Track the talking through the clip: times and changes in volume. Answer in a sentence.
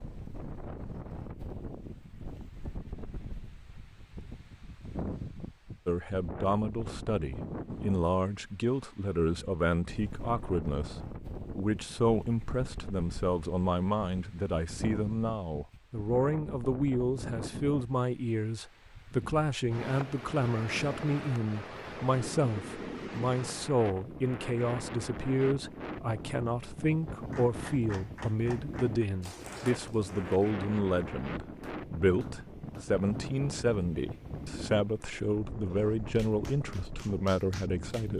You can hear the talking from 5.8 to 38.1 s, at a steady volume.